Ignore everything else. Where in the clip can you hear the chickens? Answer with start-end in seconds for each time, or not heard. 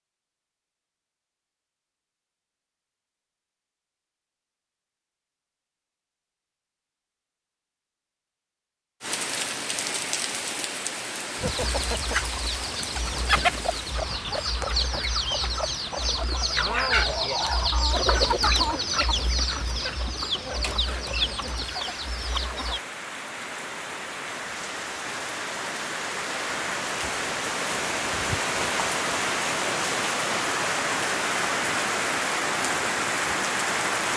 11.3-22.8.